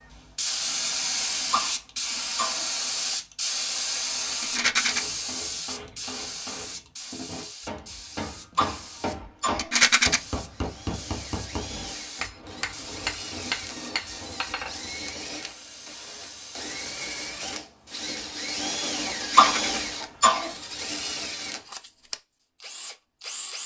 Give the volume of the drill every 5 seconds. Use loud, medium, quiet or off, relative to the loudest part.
off, off, medium, loud, loud.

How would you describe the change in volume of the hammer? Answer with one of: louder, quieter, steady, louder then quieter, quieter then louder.
louder.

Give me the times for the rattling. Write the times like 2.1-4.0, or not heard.
4.4-5.0, 9.6-10.2, 19.2-19.8.